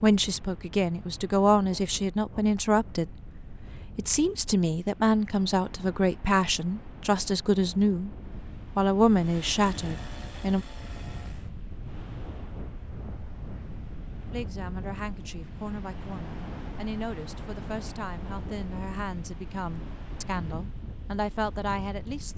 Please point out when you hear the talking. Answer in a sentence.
The talking can be heard from 0.0 to 8.2 s, from 8.8 to 10.7 s and from 14.3 to 22.3 s.